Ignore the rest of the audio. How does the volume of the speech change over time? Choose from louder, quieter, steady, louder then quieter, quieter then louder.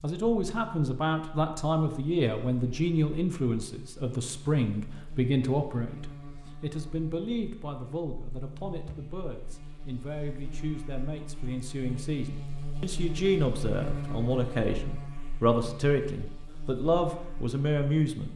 quieter then louder.